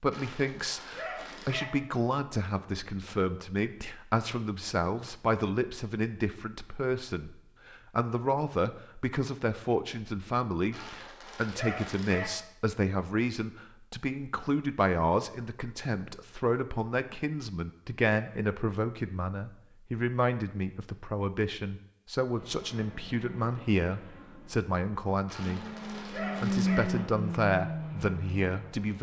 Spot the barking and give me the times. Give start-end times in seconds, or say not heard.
0.1-1.6, 10.7-12.2, 25.2-26.9.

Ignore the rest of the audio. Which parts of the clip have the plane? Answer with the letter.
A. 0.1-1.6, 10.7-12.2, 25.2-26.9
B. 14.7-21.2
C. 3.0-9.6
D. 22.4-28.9
D.